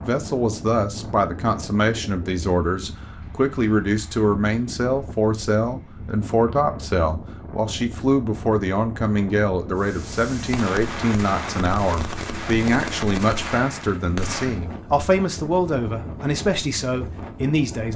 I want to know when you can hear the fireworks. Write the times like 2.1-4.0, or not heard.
9.8-14.6.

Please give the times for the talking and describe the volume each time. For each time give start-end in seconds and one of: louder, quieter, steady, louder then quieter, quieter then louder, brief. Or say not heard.
0.0-17.9 steady.